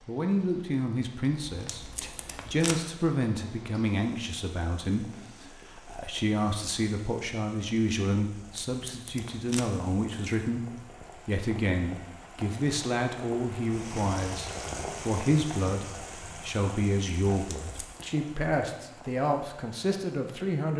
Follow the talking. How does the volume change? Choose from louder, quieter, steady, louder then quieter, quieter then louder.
steady.